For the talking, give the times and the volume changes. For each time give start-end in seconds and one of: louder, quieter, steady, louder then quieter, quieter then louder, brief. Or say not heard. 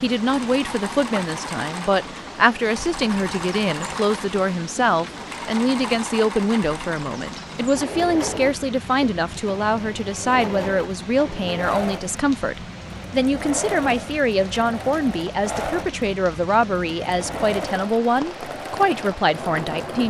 0.0-20.0 steady.